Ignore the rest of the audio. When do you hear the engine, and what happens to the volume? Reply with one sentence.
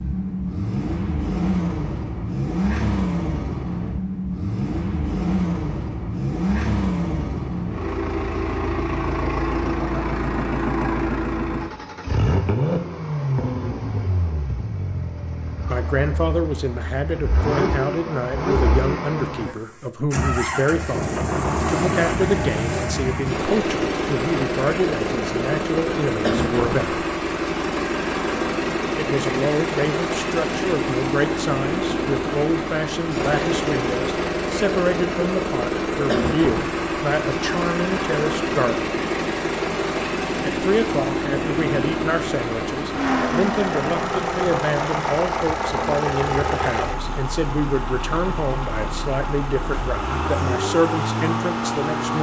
You can hear the engine from 0.0 to 52.1 s, at a steady volume.